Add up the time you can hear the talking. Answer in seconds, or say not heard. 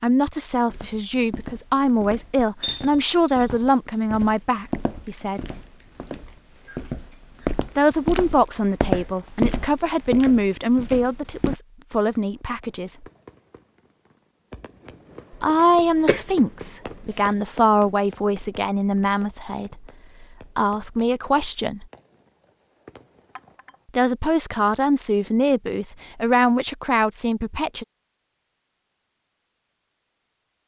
21 s.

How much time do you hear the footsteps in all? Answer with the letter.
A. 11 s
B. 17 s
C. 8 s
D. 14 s
A.